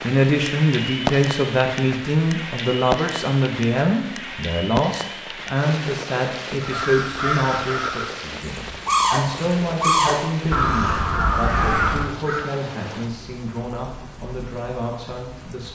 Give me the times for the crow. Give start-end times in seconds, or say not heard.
6.6-12.4.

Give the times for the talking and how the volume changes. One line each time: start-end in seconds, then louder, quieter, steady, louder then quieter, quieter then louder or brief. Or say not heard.
0.0-15.7 quieter.